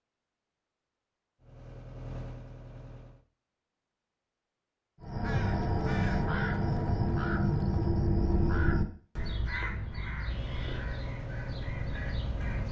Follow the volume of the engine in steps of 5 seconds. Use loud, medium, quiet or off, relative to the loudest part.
medium, off, loud.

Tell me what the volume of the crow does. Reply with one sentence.
The volume of the crow goes down.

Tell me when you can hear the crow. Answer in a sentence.
The crow can be heard from 5.0 to 12.6 s.